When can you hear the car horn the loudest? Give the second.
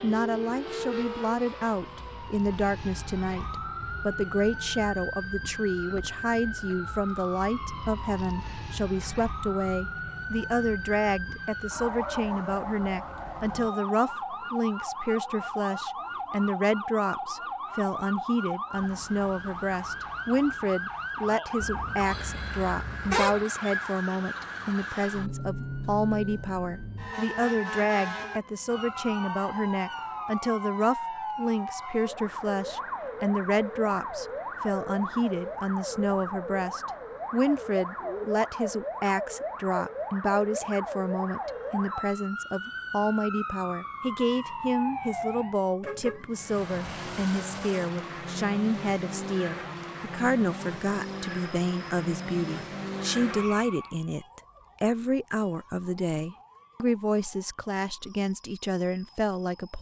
23 s.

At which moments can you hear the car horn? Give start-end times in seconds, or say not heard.
21.6-23.5, 45.8-47.2.